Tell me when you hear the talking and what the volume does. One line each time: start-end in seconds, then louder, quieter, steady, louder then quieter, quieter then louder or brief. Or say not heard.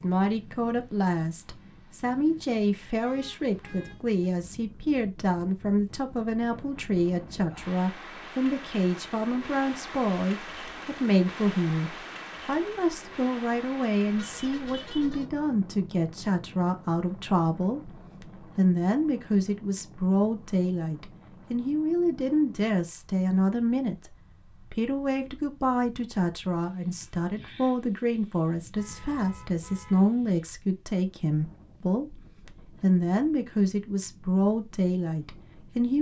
0.0-35.9 steady.